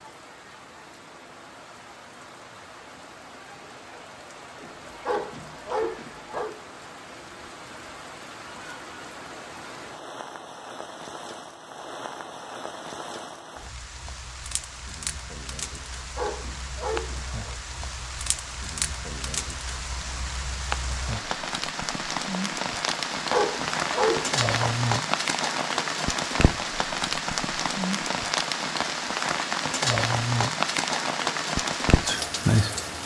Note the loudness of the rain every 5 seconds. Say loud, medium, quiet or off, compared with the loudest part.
quiet, quiet, quiet, medium, loud, loud, loud.